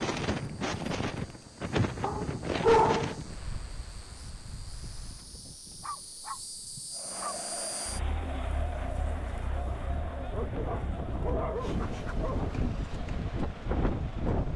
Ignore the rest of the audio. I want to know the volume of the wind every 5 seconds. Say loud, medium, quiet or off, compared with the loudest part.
loud, quiet, loud.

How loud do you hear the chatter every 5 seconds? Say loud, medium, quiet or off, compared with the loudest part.
off, loud, medium.